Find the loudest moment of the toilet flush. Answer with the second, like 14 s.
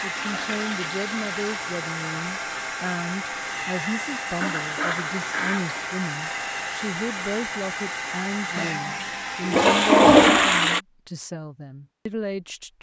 10 s.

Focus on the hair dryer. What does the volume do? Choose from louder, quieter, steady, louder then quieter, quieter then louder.
steady.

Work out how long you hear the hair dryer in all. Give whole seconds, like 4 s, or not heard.
10 s.